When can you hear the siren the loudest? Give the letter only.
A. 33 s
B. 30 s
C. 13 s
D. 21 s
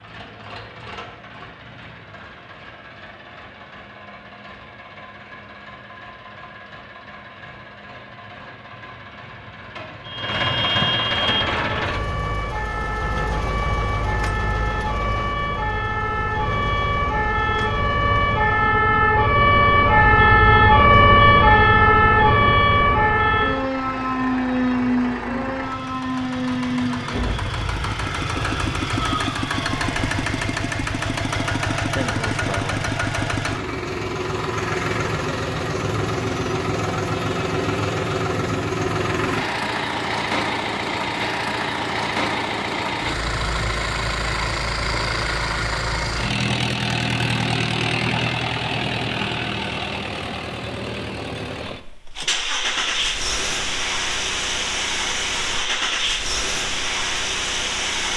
D.